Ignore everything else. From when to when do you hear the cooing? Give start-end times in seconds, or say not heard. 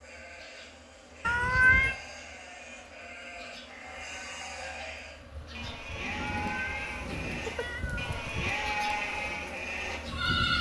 6.0-7.5.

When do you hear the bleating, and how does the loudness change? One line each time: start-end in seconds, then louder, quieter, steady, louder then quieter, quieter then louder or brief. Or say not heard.
0.0-10.5 louder.